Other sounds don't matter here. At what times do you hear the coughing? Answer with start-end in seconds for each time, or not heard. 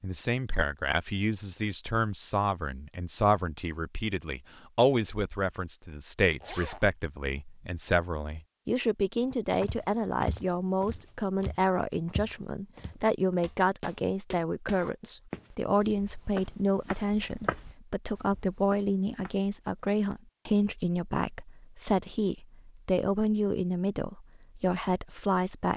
not heard.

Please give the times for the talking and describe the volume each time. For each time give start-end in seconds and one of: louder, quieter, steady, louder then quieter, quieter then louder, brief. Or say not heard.
0.0-25.7 steady.